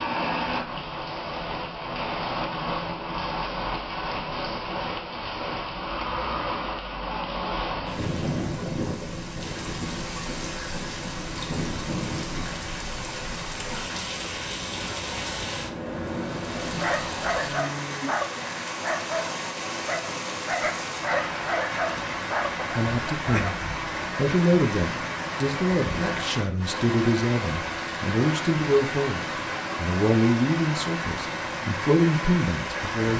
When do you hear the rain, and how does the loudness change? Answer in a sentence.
The rain can be heard from 0.0 to 33.1 s, at a steady volume.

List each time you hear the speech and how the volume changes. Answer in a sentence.
You can hear the speech from 22.8 to 33.1 s, at a steady volume.